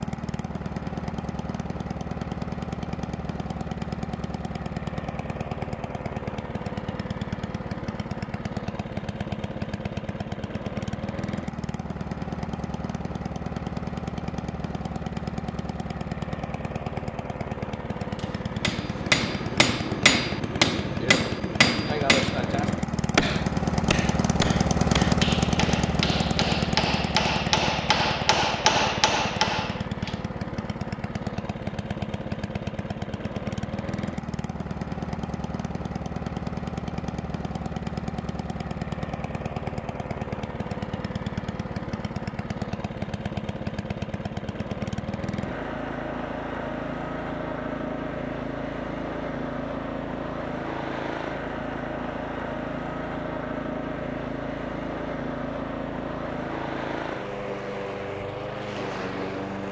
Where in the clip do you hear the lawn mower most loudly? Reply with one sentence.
The loudest moment of the lawn mower is at 25 seconds.